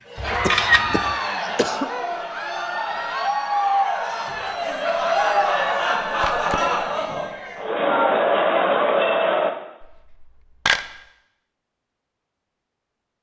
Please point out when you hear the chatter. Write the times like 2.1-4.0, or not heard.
0.1-9.5.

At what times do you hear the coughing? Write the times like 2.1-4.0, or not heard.
0.4-1.9.